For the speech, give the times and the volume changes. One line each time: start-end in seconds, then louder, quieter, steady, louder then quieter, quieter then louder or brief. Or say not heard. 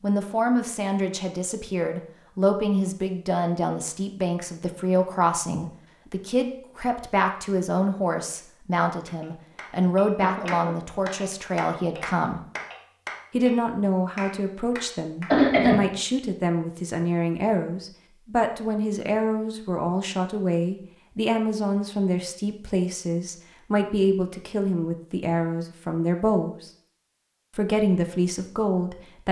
0.0-12.4 steady
13.3-26.7 steady
27.6-29.2 brief.